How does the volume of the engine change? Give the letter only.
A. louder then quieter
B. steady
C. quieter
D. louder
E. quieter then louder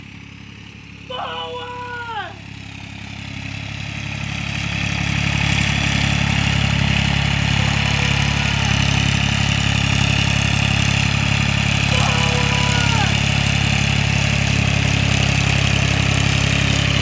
D.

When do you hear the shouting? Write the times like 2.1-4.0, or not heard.
1.1-2.4, 7.5-8.7, 11.9-13.2.